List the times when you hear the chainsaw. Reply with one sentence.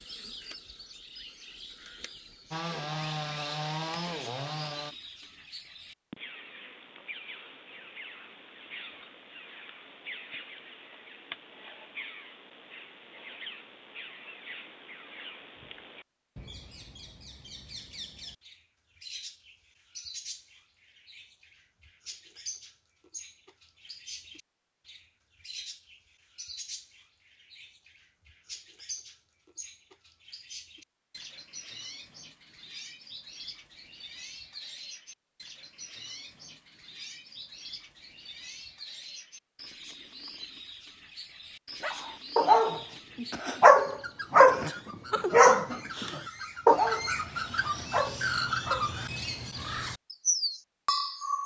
You can hear the chainsaw from 2.5 to 5.0 s.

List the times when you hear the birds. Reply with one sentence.
The birds can be heard from 0.0 to 51.4 s.